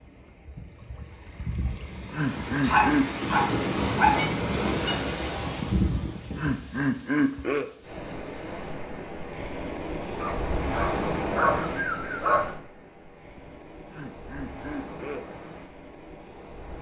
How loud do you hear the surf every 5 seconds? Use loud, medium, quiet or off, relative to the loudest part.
loud, loud, loud, quiet.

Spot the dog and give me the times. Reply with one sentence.
You can hear the dog from 2.7 to 5.0 s and from 10.2 to 12.5 s.